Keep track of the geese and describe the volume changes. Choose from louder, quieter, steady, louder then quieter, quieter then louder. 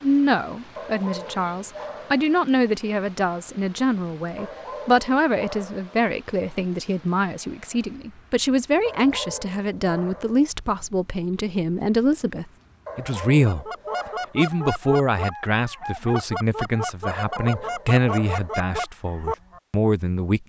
steady.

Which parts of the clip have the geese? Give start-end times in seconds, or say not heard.
13.4-19.6.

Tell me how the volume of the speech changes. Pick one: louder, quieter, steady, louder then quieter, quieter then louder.
steady.